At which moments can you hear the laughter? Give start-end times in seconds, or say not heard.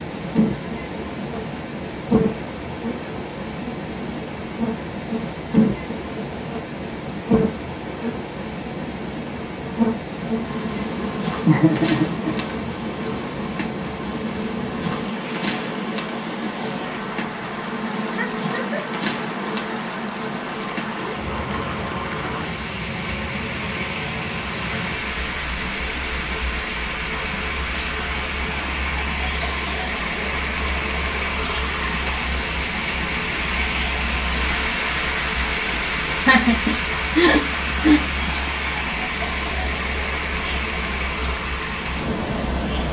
11.4-12.3, 18.1-18.9, 36.1-38.0.